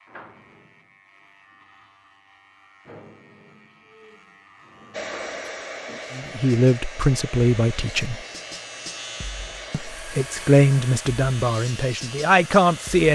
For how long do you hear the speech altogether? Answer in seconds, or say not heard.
5 s.